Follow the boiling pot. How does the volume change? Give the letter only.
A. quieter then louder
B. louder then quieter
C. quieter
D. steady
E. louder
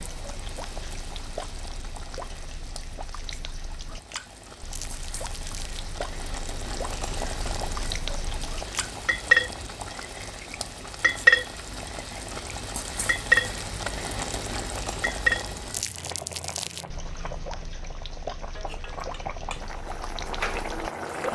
E.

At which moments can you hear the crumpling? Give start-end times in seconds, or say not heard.
4.7-5.8, 15.7-16.9.